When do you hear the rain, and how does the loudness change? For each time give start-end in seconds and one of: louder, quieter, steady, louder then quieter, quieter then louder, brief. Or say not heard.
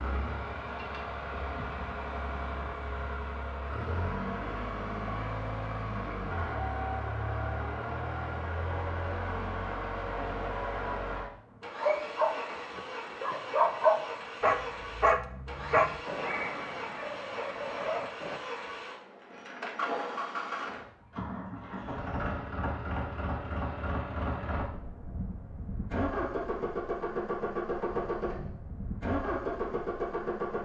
not heard.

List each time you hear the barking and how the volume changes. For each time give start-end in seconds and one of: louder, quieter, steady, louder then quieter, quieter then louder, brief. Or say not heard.
11.8-18.4 louder then quieter.